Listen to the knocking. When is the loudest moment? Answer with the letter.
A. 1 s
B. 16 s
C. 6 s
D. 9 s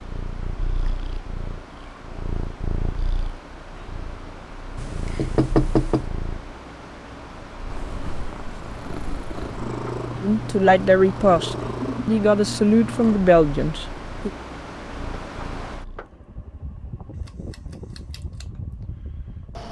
C.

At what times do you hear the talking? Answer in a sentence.
The talking can be heard from 10.2 to 14.3 s.